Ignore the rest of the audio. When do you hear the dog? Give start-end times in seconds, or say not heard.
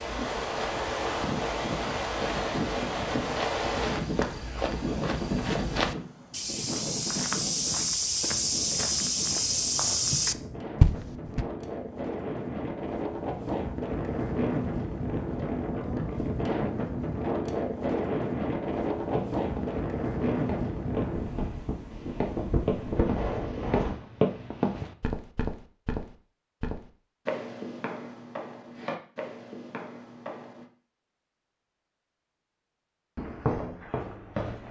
not heard.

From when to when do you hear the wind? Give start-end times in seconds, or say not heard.
0.0-23.9.